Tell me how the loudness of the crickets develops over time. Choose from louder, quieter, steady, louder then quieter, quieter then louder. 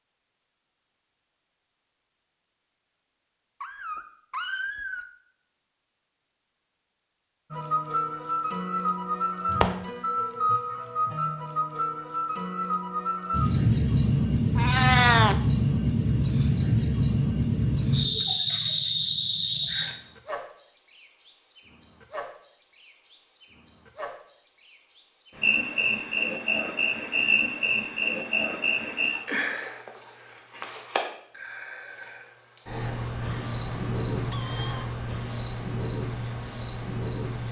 quieter.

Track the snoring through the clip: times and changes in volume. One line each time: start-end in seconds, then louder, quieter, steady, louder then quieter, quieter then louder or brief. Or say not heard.
not heard.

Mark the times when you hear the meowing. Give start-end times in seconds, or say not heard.
3.6-5.0, 14.6-15.3, 33.2-34.9.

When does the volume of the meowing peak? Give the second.
15 s.